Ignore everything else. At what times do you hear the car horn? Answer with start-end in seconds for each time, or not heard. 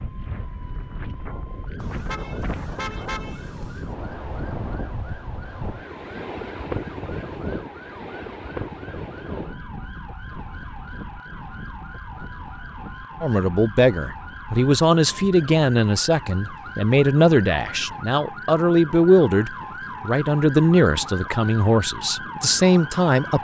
1.8-4.0.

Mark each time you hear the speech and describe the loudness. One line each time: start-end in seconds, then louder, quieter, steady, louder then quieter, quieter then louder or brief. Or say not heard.
13.2-23.4 steady.